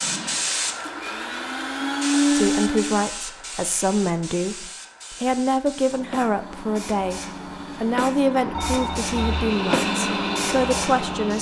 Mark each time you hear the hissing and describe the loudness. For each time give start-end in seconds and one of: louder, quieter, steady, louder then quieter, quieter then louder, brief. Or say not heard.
0.0-11.3 quieter then louder.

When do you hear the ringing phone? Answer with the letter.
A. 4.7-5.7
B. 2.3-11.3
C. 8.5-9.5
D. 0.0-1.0
C.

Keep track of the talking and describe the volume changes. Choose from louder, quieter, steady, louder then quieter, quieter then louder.
steady.